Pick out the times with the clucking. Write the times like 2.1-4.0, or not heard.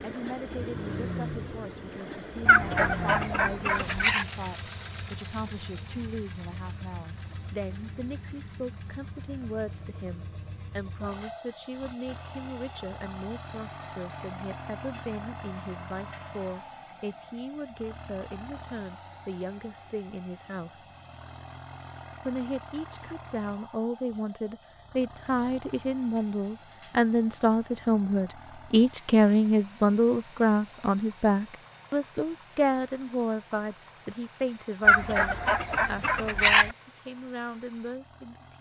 2.5-4.2, 34.9-36.8.